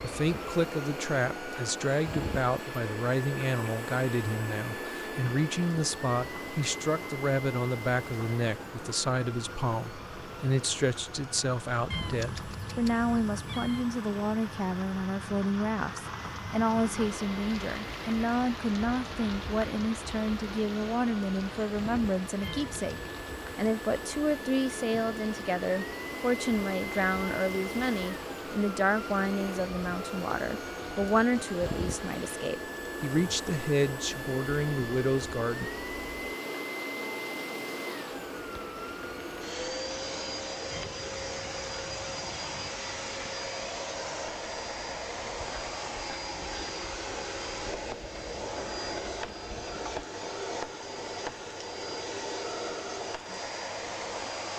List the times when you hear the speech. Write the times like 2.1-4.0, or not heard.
0.0-35.7.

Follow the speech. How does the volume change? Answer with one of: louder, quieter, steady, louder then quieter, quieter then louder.
steady.